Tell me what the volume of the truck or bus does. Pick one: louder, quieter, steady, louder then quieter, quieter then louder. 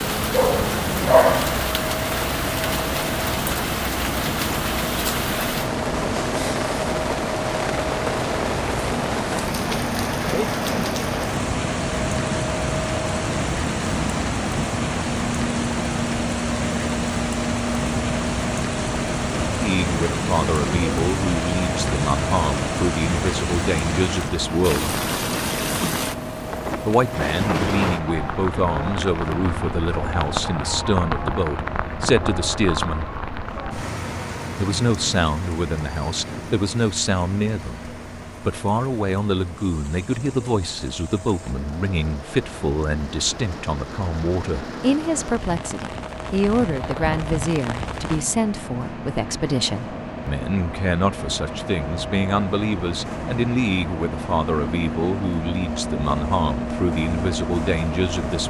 quieter then louder.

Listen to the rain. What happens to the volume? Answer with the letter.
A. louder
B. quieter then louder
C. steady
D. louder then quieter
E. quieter
E.